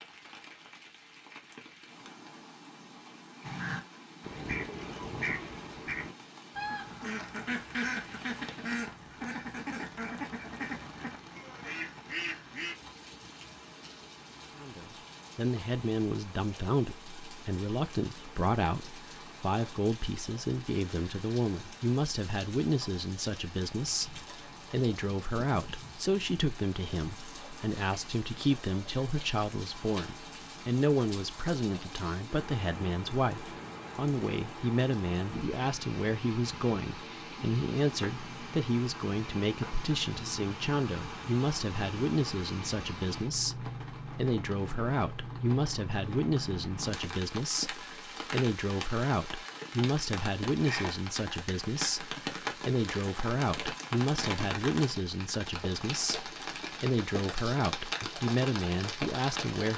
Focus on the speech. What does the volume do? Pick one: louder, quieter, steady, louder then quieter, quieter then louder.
steady.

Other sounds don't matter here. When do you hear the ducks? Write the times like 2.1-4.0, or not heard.
3.5-12.8.